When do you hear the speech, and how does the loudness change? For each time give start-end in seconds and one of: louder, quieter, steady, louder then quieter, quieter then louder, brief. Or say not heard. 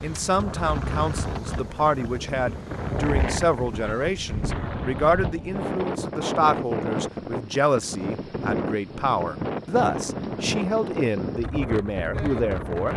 0.0-12.9 steady.